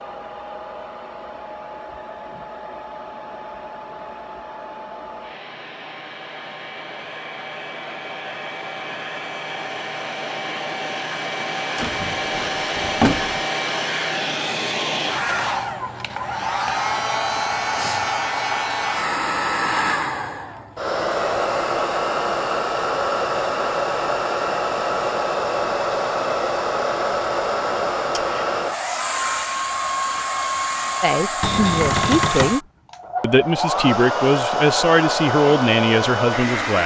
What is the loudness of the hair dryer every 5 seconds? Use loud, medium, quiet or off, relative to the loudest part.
quiet, medium, loud, loud, loud, loud, loud, loud.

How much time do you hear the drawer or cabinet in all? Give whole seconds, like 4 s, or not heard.
3 s.